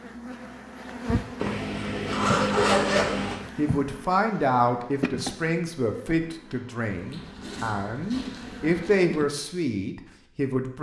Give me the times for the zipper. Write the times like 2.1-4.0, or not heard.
1.4-3.4, 6.9-8.9.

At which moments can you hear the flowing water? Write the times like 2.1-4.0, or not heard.
not heard.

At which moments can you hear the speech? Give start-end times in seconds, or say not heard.
3.5-10.7.